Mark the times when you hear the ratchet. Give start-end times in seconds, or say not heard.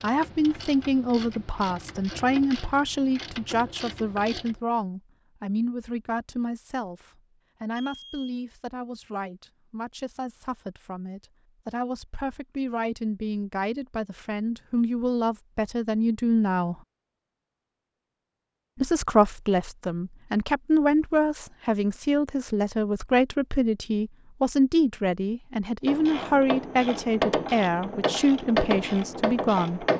0.0-4.5, 25.9-29.9.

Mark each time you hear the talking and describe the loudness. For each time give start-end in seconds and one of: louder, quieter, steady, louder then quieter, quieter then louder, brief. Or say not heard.
0.0-16.8 quieter then louder
18.8-29.9 steady.